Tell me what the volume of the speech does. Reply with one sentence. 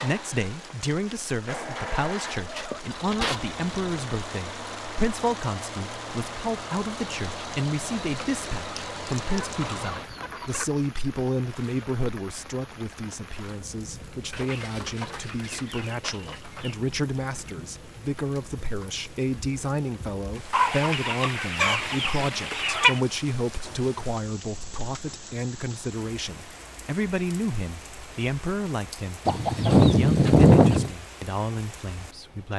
The volume of the speech stays about the same.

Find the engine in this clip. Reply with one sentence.
The engine can be heard from 0.0 to 10.1 s.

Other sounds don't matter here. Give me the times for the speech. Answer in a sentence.
The speech can be heard from 0.0 to 32.5 s.